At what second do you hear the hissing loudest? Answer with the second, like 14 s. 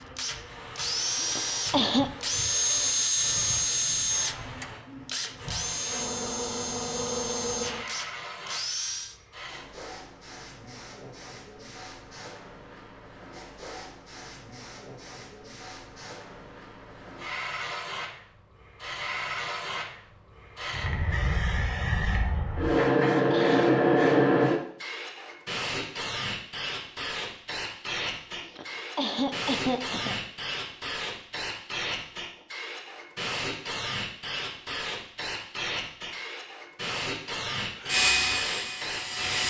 24 s.